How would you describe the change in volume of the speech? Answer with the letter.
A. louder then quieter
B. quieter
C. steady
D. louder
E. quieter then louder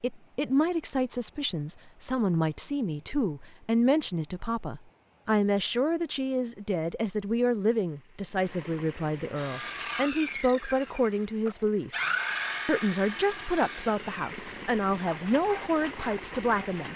C.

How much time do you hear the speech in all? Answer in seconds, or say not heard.
16 s.